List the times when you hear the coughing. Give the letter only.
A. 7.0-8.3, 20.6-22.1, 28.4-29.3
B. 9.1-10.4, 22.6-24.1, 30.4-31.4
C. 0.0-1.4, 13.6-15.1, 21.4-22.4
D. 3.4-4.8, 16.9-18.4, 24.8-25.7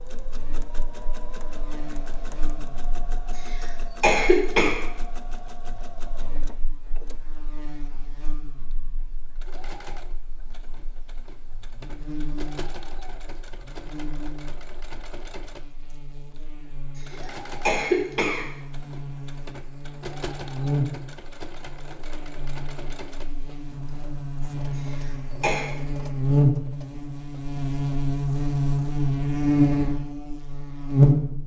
D.